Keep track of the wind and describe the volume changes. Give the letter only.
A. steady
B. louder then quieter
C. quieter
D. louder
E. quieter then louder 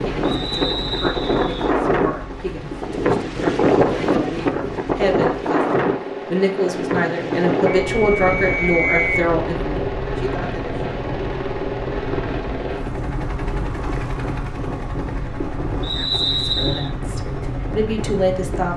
C.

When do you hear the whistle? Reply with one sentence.
The whistle can be heard from 0.2 to 1.7 s, from 7.9 to 9.3 s and from 15.8 to 16.9 s.